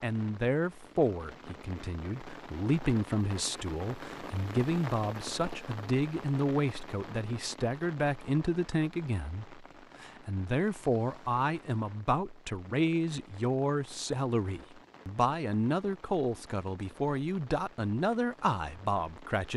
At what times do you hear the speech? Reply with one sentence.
The speech can be heard from 0.0 to 19.5 s.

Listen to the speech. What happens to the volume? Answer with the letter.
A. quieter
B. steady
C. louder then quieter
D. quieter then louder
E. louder
B.